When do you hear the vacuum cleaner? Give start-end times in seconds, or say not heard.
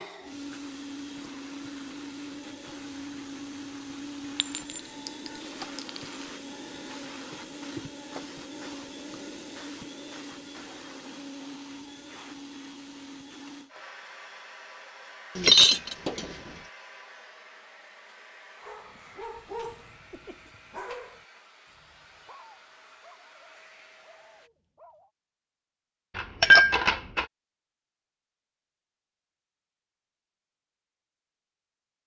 0.0-24.5.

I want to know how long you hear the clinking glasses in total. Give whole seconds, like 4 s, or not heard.
4 s.